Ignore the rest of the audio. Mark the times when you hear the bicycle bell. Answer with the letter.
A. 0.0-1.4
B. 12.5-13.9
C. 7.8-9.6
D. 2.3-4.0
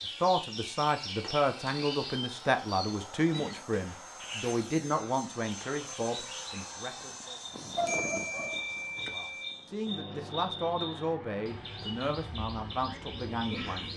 C.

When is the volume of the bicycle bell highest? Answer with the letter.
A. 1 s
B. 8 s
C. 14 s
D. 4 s
B.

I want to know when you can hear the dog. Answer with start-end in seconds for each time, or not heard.
7.8-9.2.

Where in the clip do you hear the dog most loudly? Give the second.
8 s.